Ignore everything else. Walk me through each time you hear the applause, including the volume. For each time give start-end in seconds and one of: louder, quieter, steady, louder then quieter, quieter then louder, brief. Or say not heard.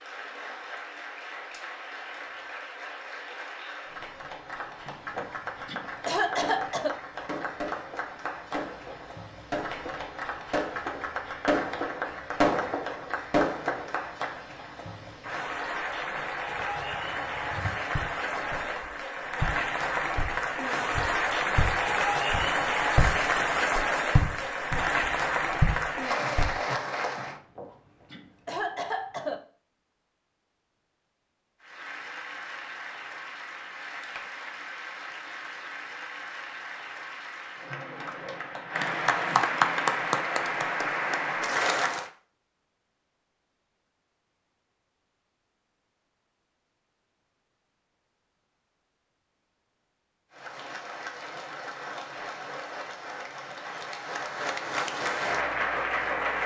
0.0-27.4 louder
31.6-42.1 louder
50.3-56.4 louder.